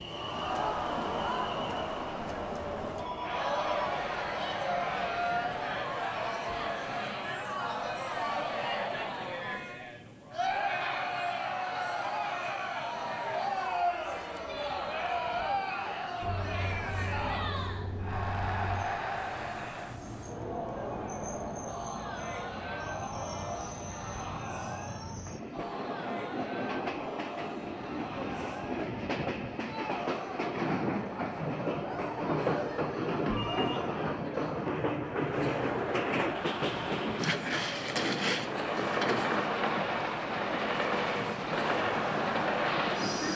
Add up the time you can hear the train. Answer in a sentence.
You can hear the train for 43 seconds altogether.